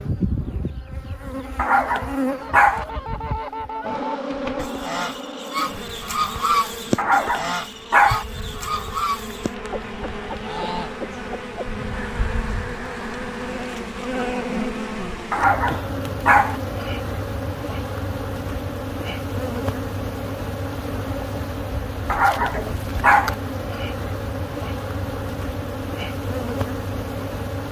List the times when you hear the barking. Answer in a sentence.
The barking can be heard from 1.6 to 2.9 s, from 7.0 to 8.2 s, from 15.3 to 16.6 s and from 22.1 to 23.4 s.